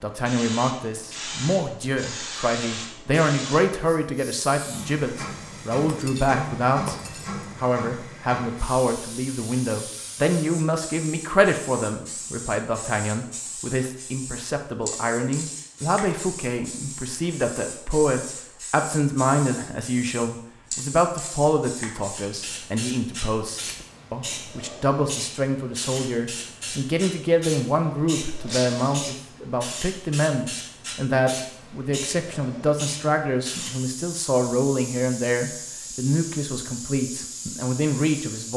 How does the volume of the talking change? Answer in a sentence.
The loudness of the talking stays about the same.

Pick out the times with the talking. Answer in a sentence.
You can hear the talking from 0.0 to 7.0 s and from 7.6 to 38.5 s.